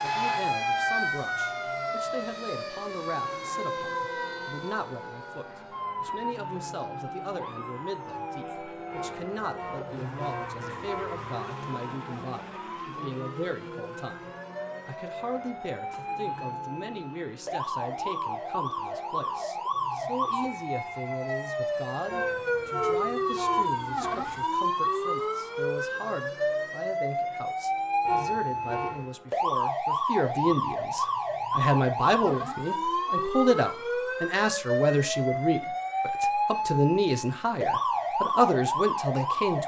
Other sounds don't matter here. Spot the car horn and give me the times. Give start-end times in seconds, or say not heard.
8.9-11.2, 22.1-24.4, 28.1-29.1.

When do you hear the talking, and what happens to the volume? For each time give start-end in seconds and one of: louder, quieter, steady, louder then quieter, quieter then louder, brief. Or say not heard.
0.0-39.6 louder.